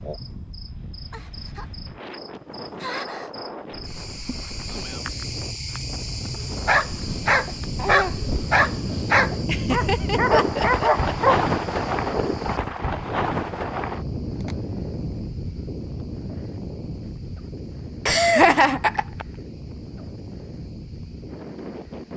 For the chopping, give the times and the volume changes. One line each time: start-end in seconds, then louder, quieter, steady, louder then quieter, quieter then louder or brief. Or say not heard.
not heard.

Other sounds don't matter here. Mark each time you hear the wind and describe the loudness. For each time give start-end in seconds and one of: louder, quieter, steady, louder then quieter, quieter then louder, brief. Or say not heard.
0.0-22.1 louder then quieter.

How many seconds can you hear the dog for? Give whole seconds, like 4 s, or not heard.
5 s.